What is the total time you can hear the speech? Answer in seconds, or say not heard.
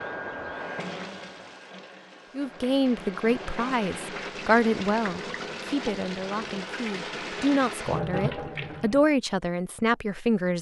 8 s.